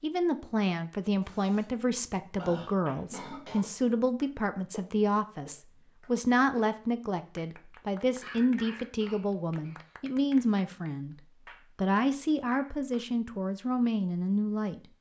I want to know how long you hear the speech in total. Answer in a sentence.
You can hear the speech for 14 seconds altogether.